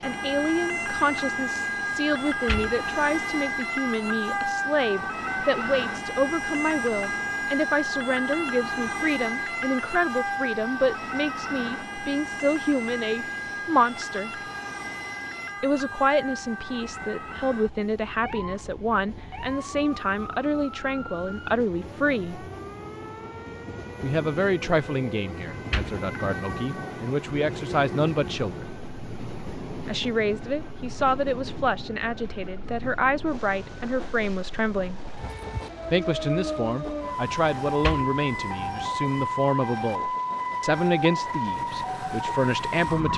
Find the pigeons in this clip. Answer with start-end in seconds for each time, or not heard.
not heard.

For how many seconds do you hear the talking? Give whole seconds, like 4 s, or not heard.
38 s.